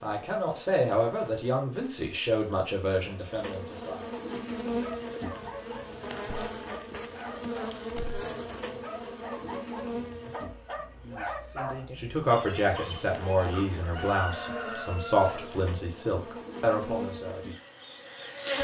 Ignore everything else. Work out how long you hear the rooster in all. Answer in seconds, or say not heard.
2 s.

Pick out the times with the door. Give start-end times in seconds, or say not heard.
6.2-8.2.